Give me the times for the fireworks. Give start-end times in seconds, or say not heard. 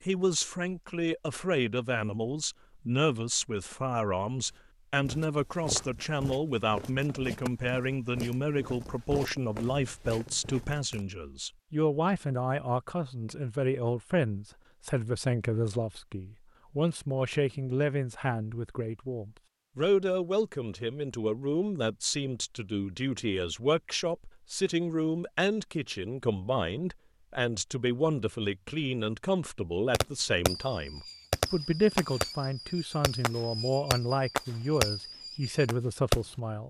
29.9-36.2.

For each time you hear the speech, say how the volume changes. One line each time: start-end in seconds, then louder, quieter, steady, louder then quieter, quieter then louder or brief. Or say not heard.
0.0-36.6 steady.